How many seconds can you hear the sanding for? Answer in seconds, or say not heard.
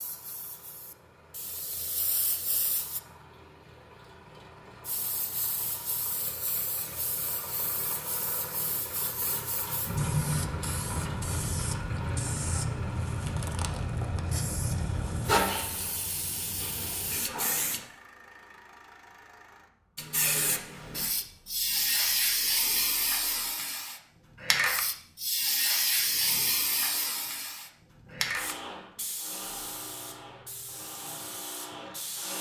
not heard.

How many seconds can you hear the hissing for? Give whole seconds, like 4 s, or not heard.
28 s.